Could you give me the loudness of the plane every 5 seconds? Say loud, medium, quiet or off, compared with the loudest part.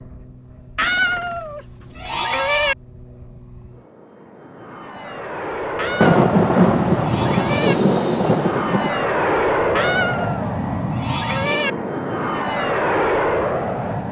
quiet, loud, loud.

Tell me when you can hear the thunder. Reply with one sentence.
You can hear the thunder from 6.0 to 8.9 s.